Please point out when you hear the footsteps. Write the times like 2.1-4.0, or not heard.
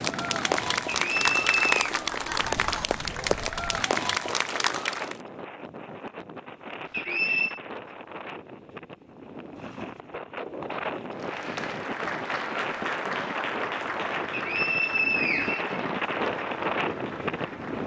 not heard.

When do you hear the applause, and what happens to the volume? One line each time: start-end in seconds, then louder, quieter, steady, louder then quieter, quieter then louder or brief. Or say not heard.
0.0-5.2 steady
11.2-17.8 quieter.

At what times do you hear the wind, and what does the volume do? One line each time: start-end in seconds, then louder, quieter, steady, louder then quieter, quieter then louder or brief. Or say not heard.
0.0-17.8 louder.